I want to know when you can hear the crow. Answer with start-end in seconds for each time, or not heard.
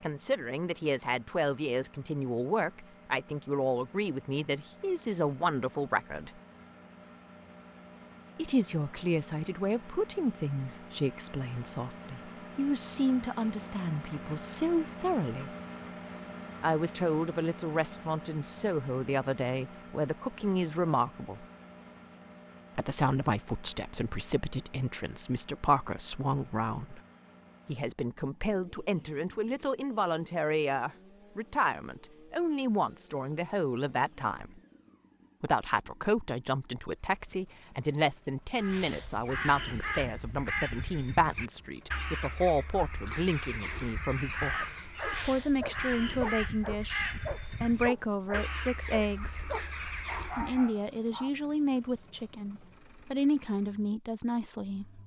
38.5-50.7.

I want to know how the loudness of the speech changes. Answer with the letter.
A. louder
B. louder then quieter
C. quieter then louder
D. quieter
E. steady
E.